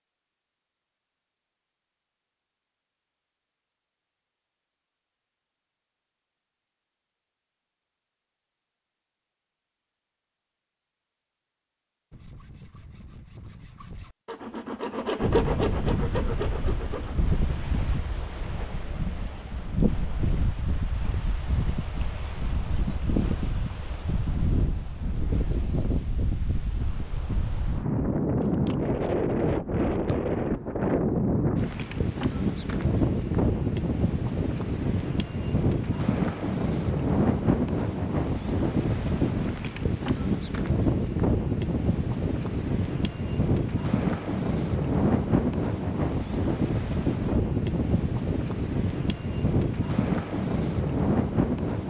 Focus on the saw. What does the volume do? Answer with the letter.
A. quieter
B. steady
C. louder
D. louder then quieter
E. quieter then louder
D.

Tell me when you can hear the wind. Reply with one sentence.
You can hear the wind from 15.2 to 51.8 s.